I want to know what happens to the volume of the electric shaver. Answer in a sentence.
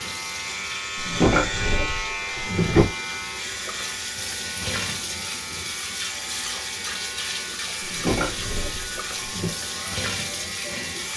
The volume of the electric shaver goes down.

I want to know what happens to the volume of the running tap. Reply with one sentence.
The loudness of the running tap goes up.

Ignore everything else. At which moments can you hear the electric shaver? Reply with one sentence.
You can hear the electric shaver from 0.0 to 11.1 s.